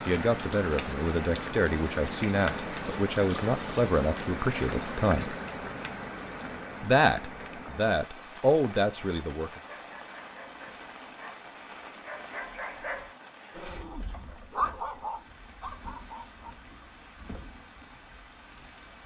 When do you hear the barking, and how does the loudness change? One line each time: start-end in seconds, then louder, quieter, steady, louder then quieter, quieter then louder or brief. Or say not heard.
9.6-16.6 louder then quieter.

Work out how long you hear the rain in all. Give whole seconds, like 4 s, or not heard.
19 s.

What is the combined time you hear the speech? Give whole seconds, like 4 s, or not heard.
8 s.